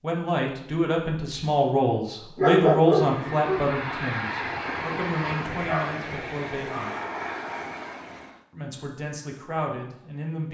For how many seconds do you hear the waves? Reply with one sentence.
You can't hear the waves here.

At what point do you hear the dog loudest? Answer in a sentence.
The volume of the dog peaks at 3 seconds.